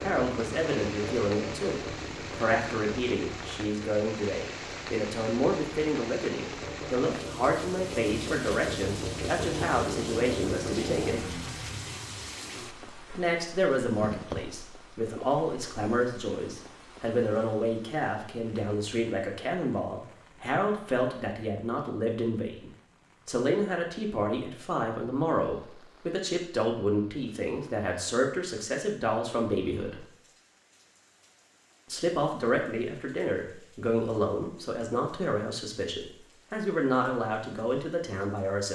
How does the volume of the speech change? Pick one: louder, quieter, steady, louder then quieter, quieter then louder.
steady.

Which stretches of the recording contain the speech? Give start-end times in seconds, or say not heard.
0.0-11.4, 13.2-30.1, 31.9-38.7.